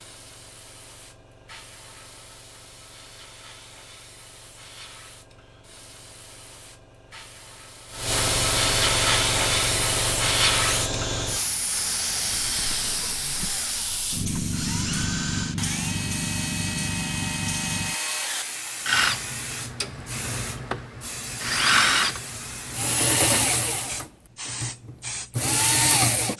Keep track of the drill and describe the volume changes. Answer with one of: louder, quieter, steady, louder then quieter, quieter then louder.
louder.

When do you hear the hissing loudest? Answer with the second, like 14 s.
9 s.